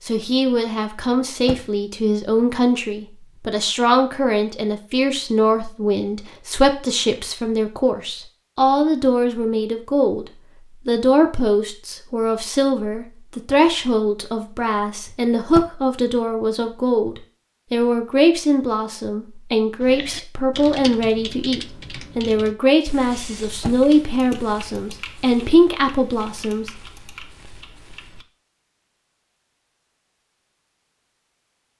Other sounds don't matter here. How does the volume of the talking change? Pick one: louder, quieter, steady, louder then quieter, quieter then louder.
steady.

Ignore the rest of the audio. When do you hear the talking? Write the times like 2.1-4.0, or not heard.
0.1-26.6.